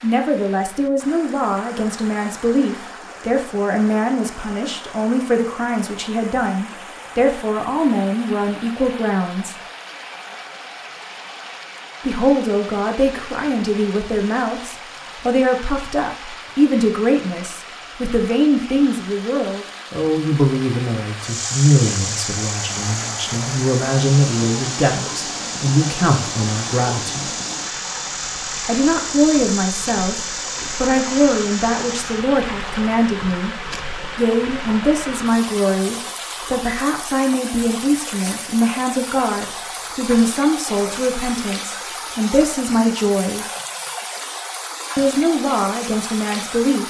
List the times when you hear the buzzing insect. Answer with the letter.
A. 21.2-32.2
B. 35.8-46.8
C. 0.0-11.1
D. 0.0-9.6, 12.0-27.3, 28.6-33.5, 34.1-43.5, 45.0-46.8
A.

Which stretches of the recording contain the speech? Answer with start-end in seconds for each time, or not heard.
0.0-9.6, 12.0-27.3, 28.6-33.5, 34.1-43.5, 45.0-46.8.